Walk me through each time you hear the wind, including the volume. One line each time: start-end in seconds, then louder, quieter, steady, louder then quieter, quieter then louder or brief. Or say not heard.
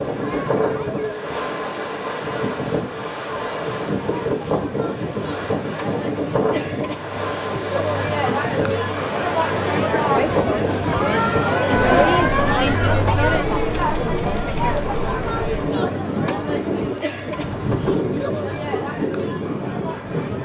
0.0-20.4 steady.